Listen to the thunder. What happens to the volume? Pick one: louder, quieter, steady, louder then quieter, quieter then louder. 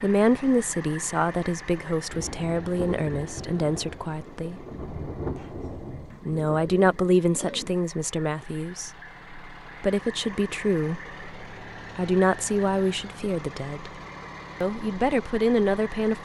quieter then louder.